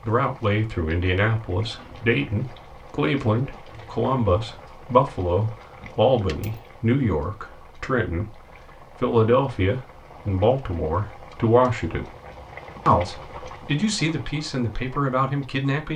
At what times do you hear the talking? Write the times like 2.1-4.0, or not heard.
0.0-8.4, 9.0-12.1, 12.8-15.9.